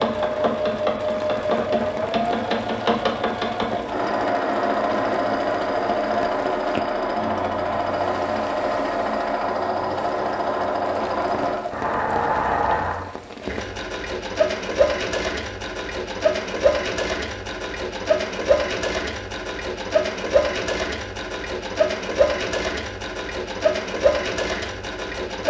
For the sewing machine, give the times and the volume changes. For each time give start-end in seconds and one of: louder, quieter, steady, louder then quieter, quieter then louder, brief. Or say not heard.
0.0-25.4 steady.